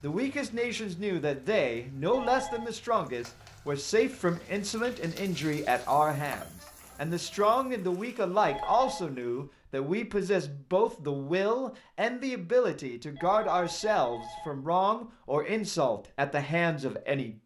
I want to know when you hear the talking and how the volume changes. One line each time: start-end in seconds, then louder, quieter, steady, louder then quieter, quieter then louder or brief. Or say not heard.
0.0-17.4 steady.